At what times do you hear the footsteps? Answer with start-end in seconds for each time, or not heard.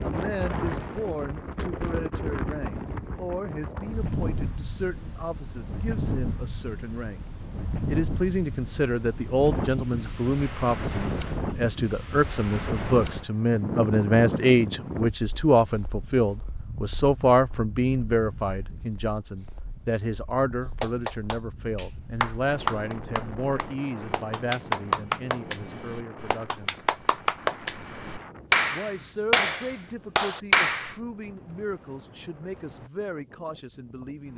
not heard.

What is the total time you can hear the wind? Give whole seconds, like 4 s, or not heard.
34 s.